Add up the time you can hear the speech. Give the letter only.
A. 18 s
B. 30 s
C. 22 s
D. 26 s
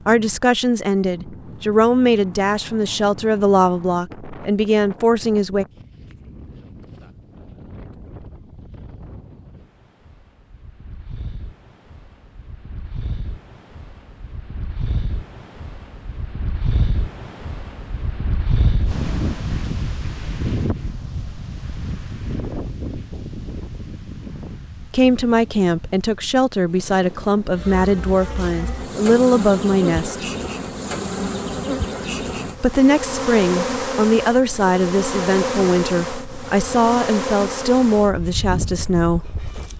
A.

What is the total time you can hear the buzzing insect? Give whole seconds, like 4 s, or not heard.
12 s.